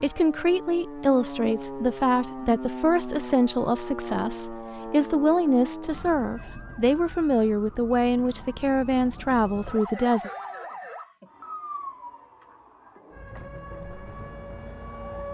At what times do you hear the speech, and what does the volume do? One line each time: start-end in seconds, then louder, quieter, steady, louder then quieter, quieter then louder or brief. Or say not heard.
0.0-10.3 steady.